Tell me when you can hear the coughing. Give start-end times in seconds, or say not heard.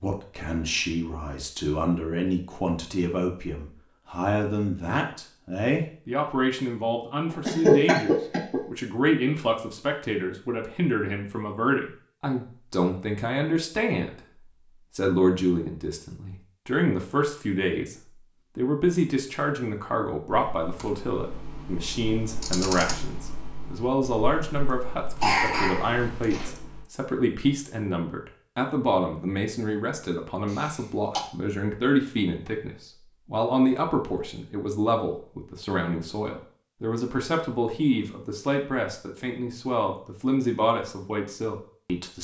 7.5-8.6, 25.2-26.5, 30.4-31.2.